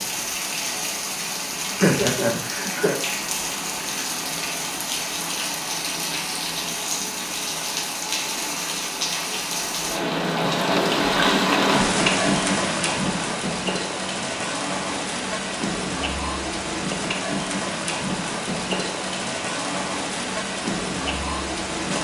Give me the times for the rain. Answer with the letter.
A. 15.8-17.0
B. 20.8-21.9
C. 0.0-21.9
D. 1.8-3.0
C.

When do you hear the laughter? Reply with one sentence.
You can hear the laughter from 1.8 to 3.0 s.